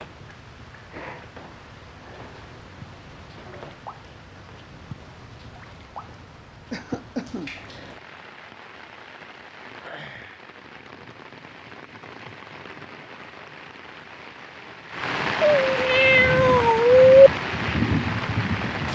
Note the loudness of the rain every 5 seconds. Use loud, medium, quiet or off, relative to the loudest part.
quiet, quiet, quiet, loud.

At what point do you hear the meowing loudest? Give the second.
17 s.